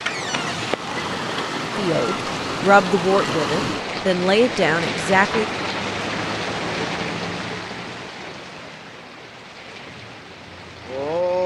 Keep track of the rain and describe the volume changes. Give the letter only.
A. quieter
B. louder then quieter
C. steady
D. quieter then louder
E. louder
A.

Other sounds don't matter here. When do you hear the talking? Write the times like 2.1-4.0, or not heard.
1.8-5.5.